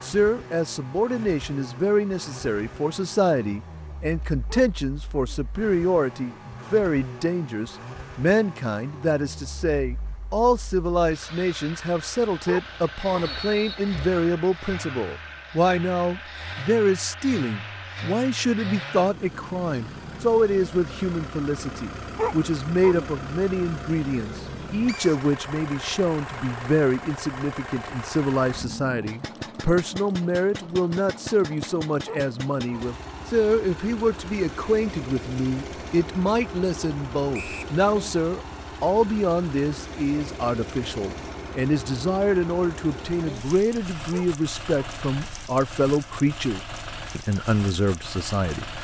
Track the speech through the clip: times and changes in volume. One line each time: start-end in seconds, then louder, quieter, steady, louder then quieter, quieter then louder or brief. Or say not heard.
0.0-48.6 steady.